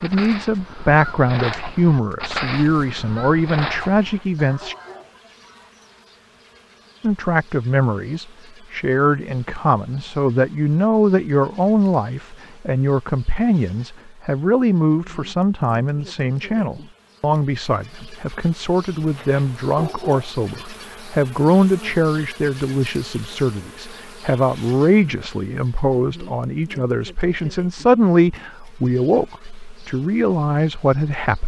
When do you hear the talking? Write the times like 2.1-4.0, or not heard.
0.0-4.8, 7.0-31.4.